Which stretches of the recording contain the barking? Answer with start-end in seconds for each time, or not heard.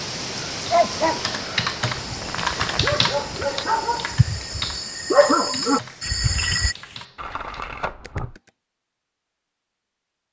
0.5-6.8.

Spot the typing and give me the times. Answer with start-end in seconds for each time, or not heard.
0.7-8.5.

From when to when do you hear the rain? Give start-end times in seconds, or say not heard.
0.0-7.1.